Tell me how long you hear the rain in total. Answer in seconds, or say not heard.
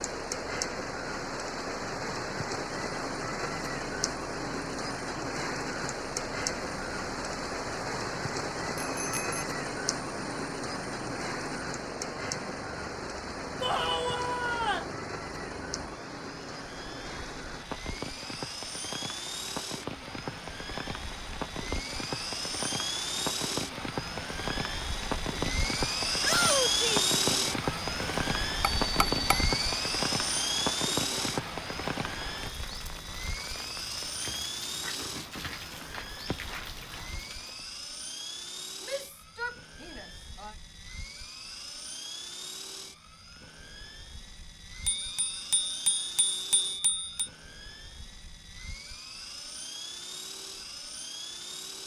38 s.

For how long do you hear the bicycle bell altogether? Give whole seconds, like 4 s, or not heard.
4 s.